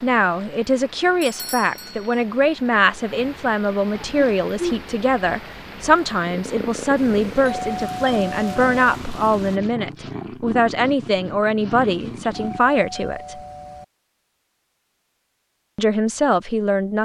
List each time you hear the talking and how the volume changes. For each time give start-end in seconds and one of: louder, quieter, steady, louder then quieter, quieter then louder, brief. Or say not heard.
0.0-13.4 steady
15.8-17.0 brief.